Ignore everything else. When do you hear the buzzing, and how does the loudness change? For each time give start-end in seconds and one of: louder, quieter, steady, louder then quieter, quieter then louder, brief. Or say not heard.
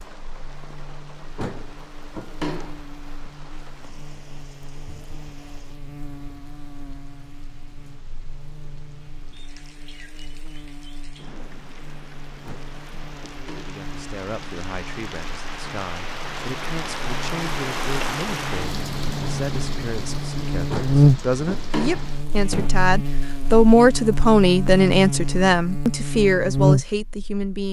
0.0-27.5 louder.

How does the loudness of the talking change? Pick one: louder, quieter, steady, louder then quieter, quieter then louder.
louder.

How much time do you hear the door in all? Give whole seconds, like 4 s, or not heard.
5 s.